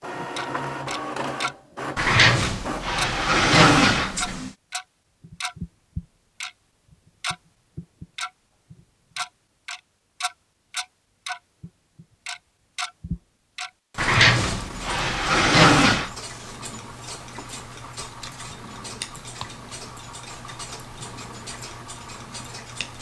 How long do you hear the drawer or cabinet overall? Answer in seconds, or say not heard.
5 s.